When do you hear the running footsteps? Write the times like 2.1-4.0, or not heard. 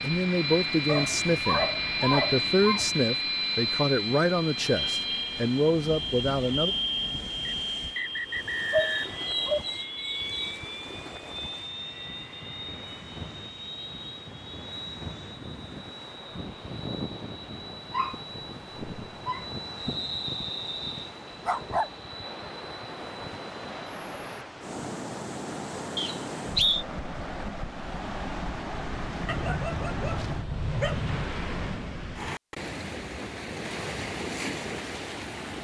not heard.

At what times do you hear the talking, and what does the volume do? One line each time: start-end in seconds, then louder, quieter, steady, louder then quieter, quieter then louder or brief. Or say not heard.
0.0-6.8 steady.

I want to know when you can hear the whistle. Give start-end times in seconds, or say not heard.
7.5-9.2, 19.8-20.9, 25.9-26.9.